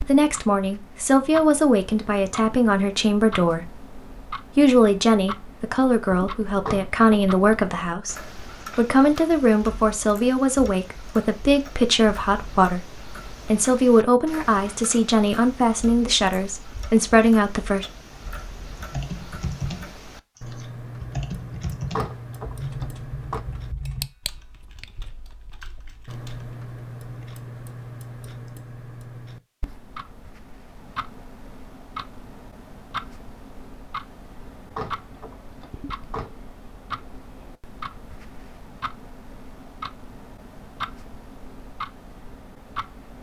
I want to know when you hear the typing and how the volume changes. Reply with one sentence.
You can hear the typing from 18.8 to 26.5 s, getting quieter.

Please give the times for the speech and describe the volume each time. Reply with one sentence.
The speech can be heard from 0.0 to 17.9 s, at a steady volume.